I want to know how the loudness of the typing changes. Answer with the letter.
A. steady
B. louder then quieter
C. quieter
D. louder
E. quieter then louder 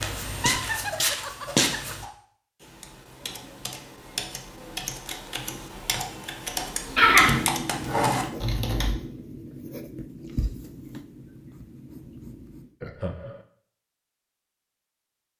D.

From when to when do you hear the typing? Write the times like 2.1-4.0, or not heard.
2.6-8.9.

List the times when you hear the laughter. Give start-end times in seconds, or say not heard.
0.3-1.9, 7.0-7.5, 12.8-13.4.